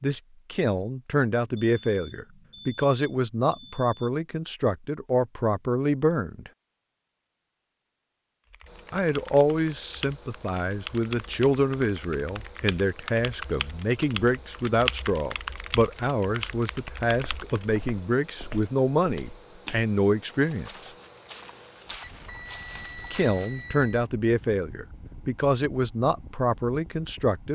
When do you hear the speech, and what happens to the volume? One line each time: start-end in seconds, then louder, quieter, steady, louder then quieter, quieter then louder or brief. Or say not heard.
0.0-6.5 steady
8.9-20.9 steady
23.1-27.5 steady.